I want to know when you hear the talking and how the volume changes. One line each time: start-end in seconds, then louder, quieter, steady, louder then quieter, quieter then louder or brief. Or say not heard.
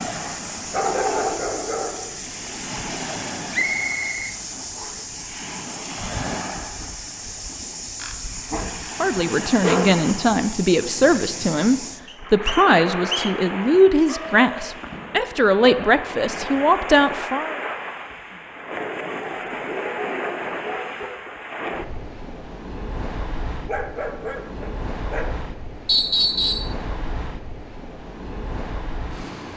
9.0-17.6 steady.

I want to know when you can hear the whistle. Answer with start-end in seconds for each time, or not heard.
3.5-5.0, 12.1-13.3, 25.9-26.8.